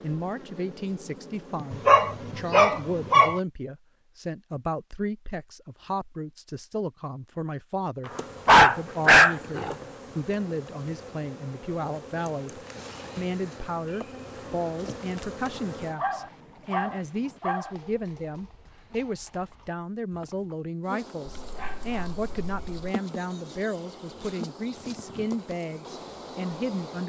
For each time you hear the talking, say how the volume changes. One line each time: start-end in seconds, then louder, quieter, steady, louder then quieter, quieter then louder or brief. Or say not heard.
0.0-27.0 steady.